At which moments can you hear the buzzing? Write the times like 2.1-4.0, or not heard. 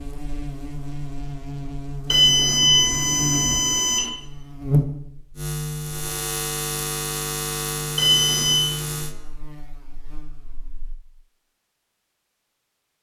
0.0-10.9.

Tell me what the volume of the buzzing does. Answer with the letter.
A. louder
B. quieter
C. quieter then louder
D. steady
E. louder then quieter
E.